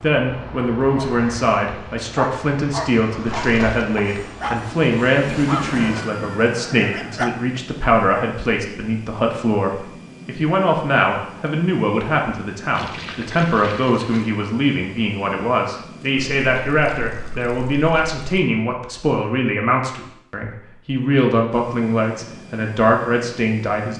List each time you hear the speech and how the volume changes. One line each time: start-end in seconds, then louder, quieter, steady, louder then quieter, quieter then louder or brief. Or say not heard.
0.0-23.9 steady.